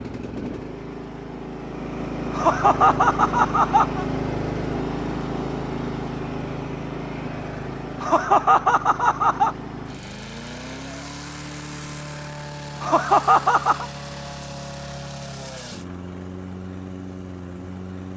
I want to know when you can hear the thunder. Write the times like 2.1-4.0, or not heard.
not heard.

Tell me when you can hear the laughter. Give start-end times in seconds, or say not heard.
2.3-4.0, 8.0-9.6, 12.8-13.8.